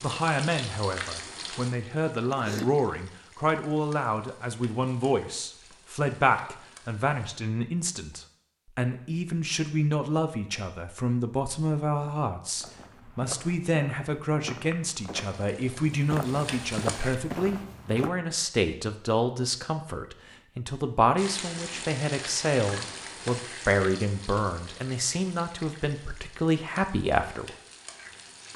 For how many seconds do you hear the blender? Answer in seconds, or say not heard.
not heard.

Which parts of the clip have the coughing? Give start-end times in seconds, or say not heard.
2.2-2.7.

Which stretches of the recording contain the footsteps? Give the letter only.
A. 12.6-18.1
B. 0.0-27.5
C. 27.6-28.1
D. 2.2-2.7
A.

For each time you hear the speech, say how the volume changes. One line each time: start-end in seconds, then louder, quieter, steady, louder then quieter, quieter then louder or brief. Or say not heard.
0.0-27.5 steady.